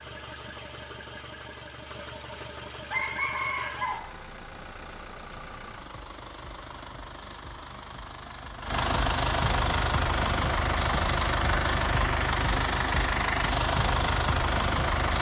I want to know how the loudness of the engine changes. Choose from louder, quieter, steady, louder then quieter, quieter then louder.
louder.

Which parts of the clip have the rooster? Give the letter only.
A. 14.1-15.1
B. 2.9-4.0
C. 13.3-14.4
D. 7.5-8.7
B.